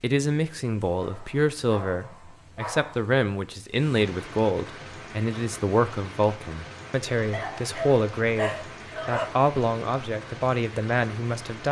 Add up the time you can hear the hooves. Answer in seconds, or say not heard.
not heard.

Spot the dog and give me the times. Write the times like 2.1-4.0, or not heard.
1.0-3.0, 7.3-9.3.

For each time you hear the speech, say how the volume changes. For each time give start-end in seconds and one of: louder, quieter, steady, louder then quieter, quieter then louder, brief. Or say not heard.
0.0-11.6 steady.